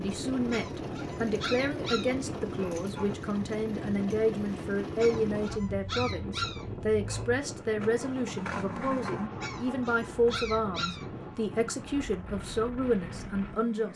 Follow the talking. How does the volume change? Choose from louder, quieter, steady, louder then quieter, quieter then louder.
steady.